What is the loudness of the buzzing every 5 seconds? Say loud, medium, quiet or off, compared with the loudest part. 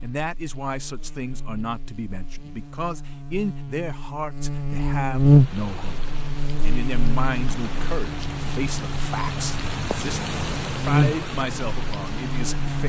quiet, loud, loud.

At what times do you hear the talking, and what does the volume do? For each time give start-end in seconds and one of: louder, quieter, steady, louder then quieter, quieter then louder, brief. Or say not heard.
0.0-12.8 steady.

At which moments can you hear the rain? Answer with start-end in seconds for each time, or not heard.
5.2-12.8.